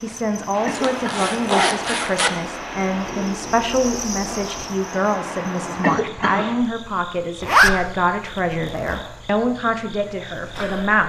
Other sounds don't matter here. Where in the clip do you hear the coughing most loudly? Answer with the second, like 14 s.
6 s.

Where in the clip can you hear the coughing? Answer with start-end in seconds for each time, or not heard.
0.7-1.2, 5.8-6.5.